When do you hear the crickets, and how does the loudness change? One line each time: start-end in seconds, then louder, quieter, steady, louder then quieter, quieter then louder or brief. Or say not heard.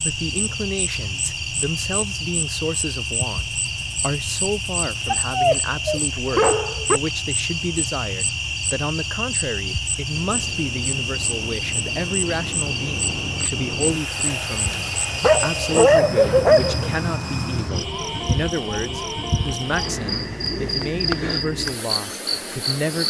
0.0-23.0 steady.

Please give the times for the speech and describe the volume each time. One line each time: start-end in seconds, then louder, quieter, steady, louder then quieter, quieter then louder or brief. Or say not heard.
0.0-23.0 steady.